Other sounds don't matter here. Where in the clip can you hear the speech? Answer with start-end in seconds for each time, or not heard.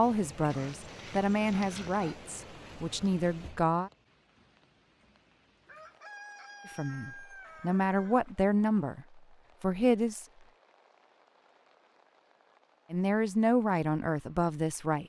0.0-3.9, 6.7-10.2, 12.9-15.0.